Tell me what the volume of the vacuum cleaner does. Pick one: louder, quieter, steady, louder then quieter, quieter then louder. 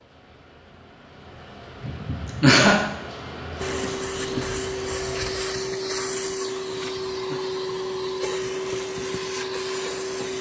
steady.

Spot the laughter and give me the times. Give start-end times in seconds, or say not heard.
1.8-2.8, 6.8-7.4.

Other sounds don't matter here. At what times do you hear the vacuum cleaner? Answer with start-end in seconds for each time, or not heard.
3.5-10.3.